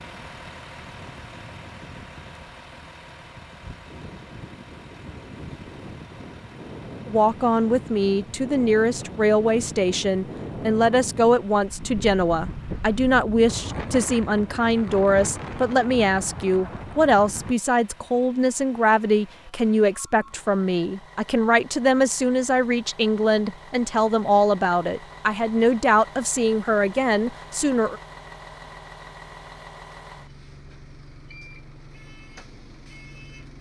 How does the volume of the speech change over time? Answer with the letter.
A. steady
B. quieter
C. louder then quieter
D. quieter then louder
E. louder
A.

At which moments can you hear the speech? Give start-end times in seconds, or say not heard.
7.0-28.0.